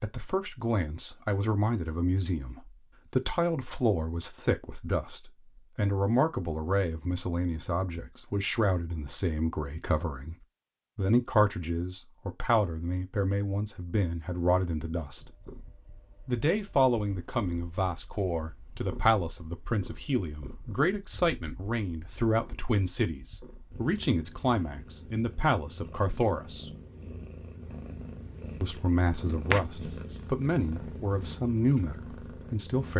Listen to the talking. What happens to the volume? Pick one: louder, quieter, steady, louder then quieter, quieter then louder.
steady.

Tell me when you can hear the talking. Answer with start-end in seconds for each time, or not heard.
0.0-10.3, 10.9-15.3, 16.2-26.7, 28.6-32.9.